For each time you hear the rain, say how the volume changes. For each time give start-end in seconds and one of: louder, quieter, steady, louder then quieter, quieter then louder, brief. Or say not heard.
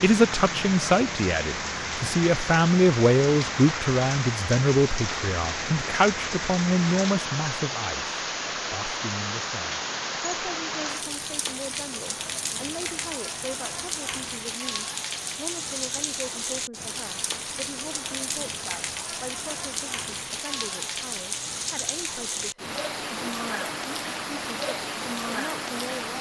0.0-26.1 steady.